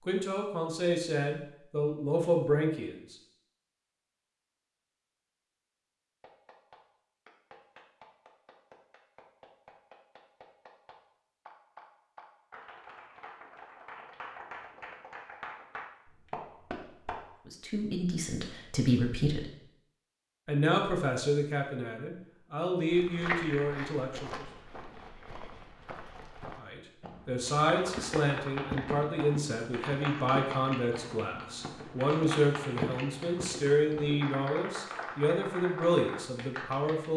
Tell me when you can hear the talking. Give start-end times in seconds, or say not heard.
0.1-3.1, 17.4-19.4, 20.4-24.4, 26.6-37.1.